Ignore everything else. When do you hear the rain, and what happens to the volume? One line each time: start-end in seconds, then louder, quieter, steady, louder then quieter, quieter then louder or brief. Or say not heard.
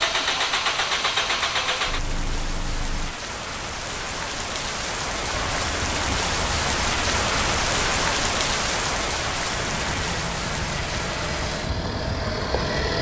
0.0-12.8 louder then quieter.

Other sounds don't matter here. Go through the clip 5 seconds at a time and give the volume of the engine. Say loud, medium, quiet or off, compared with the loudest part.
loud, medium, loud.